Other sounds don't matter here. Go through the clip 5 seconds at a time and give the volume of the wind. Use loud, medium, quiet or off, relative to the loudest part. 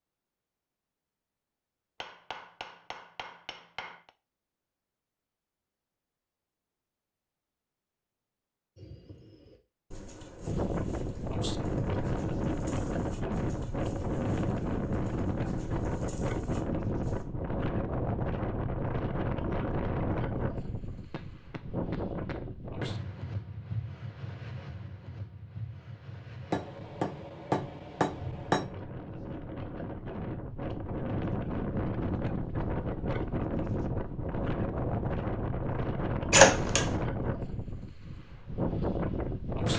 off, off, loud, loud, medium, medium, loud, loud.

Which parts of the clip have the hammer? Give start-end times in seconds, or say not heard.
2.0-4.1, 21.1-22.9, 26.5-28.7.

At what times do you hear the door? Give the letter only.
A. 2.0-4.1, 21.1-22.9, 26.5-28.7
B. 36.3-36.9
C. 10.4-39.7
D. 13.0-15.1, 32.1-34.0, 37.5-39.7
B.